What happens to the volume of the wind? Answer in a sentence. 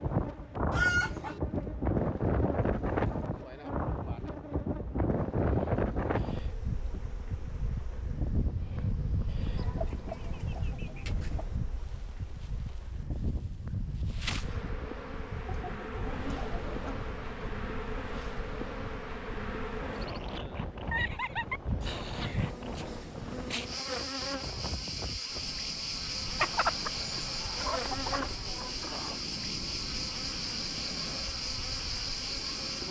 The volume of the wind goes down.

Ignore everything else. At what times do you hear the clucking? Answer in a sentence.
The clucking can be heard from 0.7 to 1.4 s, from 9.6 to 11.6 s, from 15.4 to 17.5 s, from 20.9 to 22.5 s and from 26.4 to 29.1 s.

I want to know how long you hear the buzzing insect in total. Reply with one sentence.
The buzzing insect can be heard for 33 seconds in total.